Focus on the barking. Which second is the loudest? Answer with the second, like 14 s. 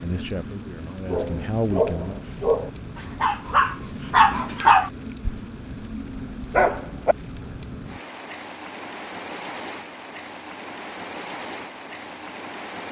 5 s.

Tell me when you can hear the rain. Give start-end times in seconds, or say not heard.
0.0-12.8.